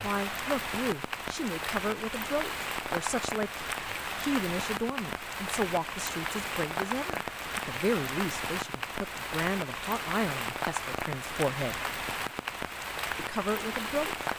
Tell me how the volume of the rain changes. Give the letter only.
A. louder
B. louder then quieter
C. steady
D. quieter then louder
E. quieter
C.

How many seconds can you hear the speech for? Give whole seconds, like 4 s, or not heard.
13 s.